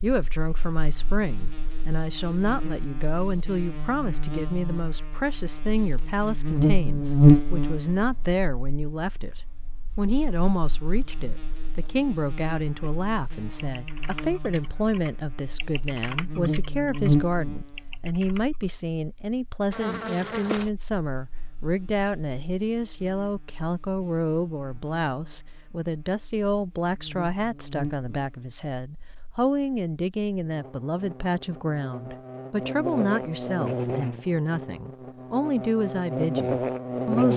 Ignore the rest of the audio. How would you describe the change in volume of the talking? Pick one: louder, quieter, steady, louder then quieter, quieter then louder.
steady.